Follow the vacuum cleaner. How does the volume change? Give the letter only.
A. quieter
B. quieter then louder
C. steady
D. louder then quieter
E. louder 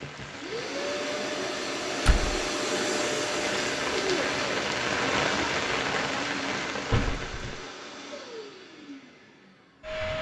A.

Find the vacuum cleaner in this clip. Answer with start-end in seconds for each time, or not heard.
0.3-10.1.